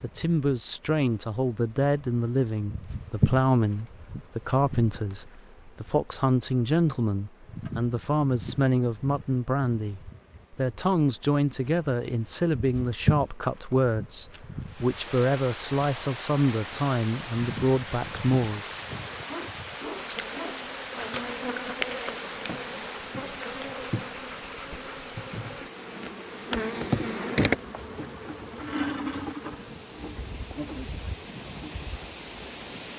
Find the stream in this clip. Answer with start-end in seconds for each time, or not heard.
14.7-32.9.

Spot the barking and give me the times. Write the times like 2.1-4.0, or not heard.
18.9-20.6.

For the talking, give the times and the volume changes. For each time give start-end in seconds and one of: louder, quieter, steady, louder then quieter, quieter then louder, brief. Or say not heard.
0.0-18.7 steady.